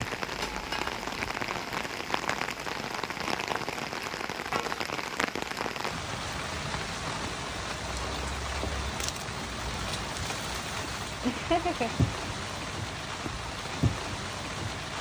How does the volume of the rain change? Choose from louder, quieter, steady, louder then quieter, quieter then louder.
steady.